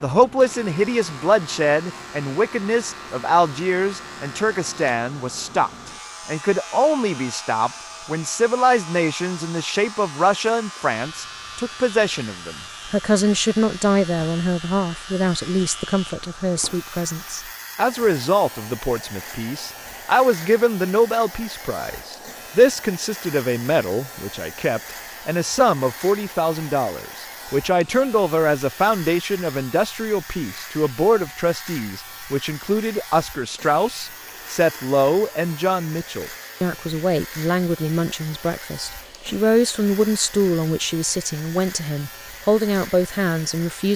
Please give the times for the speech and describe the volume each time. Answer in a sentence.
The speech can be heard from 0.0 to 43.9 s, at a steady volume.